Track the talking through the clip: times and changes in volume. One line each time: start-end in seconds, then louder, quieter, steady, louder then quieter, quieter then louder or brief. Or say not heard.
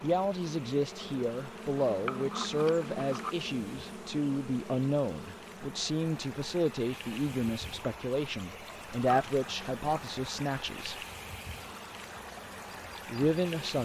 0.0-11.0 steady
13.1-13.7 brief.